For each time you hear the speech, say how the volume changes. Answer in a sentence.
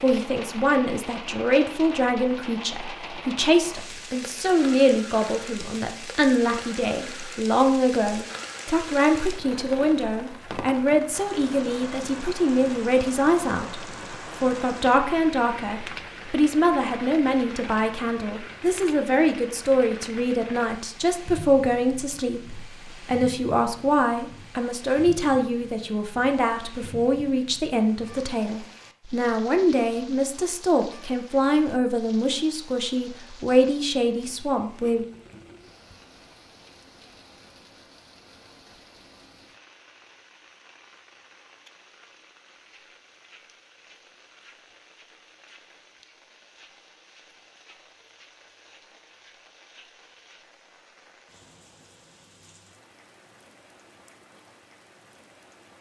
The speech can be heard from 0.0 to 13.8 s, at a steady volume; and from 14.4 to 35.0 s, at a steady volume.